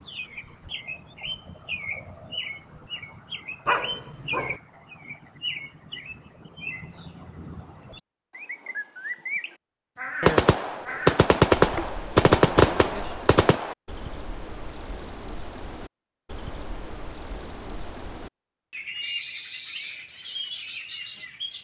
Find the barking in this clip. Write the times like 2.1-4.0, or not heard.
3.6-4.6.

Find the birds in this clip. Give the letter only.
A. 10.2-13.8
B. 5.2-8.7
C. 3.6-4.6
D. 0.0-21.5
D.